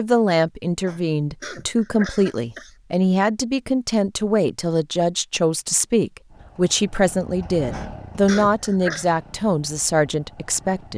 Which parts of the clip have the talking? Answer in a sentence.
The talking can be heard from 0.0 to 10.9 s.